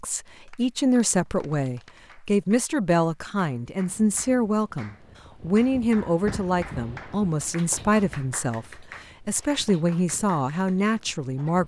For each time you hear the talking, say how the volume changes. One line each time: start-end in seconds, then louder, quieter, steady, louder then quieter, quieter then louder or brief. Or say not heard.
0.0-11.6 steady.